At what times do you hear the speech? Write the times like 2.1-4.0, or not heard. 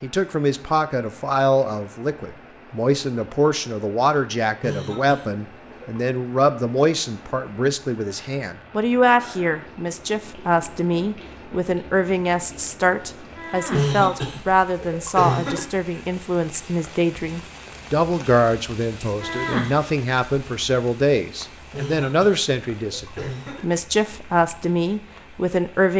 0.0-25.9.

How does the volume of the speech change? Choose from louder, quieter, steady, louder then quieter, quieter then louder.
steady.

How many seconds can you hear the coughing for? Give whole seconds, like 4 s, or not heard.
5 s.